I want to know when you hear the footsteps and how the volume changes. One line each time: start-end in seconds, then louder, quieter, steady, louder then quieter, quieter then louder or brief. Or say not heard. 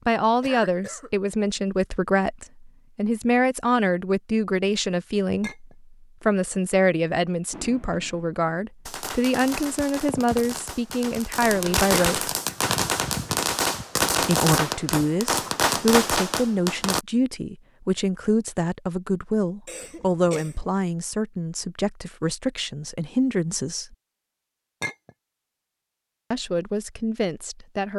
not heard.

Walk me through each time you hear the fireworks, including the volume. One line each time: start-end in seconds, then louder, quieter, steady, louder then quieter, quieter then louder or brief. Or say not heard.
7.5-17.1 louder.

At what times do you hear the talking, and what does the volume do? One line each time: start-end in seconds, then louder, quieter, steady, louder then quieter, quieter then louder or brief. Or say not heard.
0.1-12.3 steady
14.2-23.9 steady
26.3-27.9 brief.